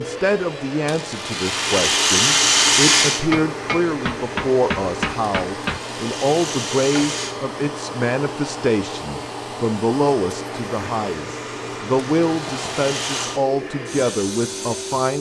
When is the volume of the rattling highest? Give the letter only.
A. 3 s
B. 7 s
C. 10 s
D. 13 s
A.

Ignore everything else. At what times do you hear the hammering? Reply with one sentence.
You can hear the hammering from 3.3 to 5.8 s.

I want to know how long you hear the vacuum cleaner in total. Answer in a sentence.
The vacuum cleaner can be heard for 15 seconds in total.